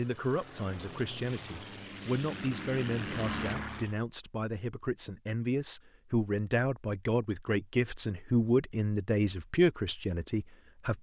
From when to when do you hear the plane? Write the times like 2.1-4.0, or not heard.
0.0-4.0.